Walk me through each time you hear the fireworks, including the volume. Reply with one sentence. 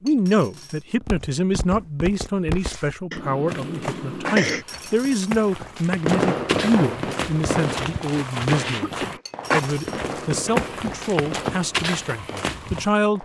You can hear the fireworks from 6.0 to 13.2 s, getting quieter.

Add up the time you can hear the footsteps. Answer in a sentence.
You can hear the footsteps for 12 seconds altogether.